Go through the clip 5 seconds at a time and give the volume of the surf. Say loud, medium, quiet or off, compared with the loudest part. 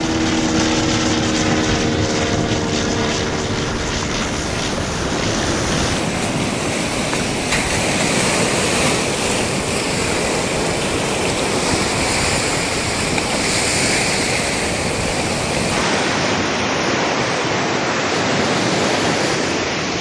medium, loud, loud, loud.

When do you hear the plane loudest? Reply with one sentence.
The volume of the plane peaks at 1 second.